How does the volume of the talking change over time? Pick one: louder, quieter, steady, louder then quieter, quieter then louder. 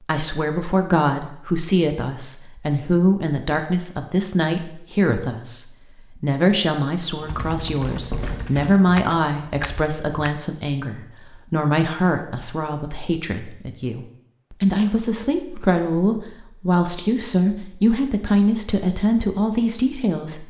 steady.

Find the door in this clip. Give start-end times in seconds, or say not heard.
7.8-8.7.